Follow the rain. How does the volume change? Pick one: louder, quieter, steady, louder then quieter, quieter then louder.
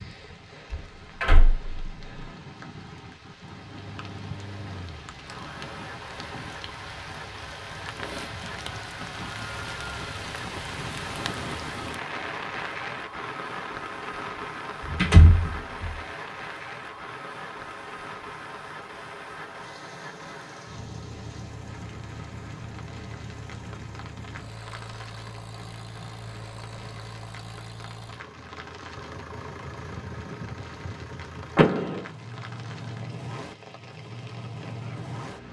louder then quieter.